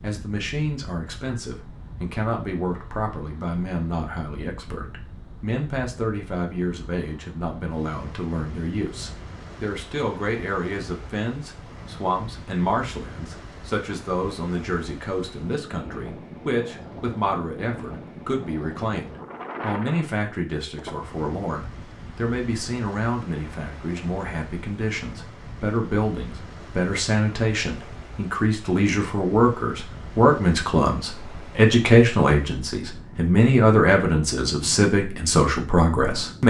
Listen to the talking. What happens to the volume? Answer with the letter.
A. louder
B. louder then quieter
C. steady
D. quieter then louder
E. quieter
A.